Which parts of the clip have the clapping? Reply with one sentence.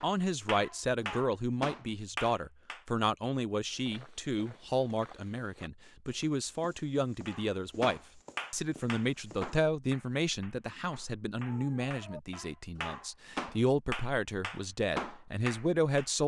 You can hear the clapping from 0.0 to 2.8 s and from 7.2 to 16.1 s.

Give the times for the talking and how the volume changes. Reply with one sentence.
The talking can be heard from 0.0 to 16.2 s, at a steady volume.